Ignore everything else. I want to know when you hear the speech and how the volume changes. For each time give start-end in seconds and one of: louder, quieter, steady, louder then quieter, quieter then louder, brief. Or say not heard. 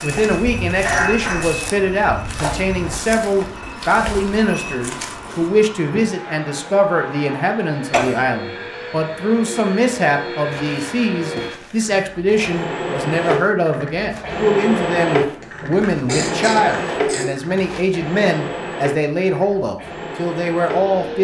0.0-21.1 steady.